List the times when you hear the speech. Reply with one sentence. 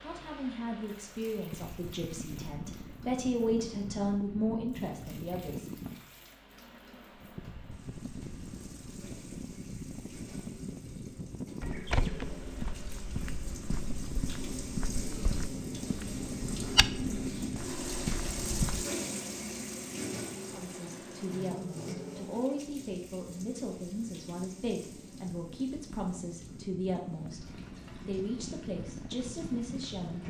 You can hear the speech from 0.0 to 5.7 s and from 20.5 to 30.2 s.